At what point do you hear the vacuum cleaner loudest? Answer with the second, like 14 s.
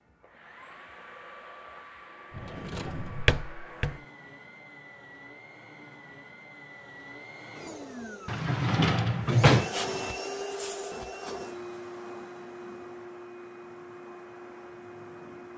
10 s.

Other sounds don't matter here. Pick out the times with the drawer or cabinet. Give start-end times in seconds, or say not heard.
2.4-4.0, 8.2-9.7.